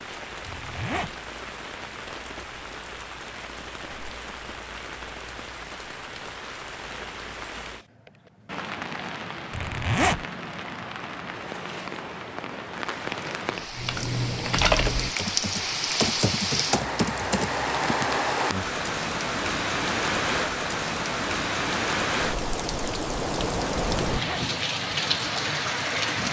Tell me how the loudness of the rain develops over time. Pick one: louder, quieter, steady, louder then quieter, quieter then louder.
louder.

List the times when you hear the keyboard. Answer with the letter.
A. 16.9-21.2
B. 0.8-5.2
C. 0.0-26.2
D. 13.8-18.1
D.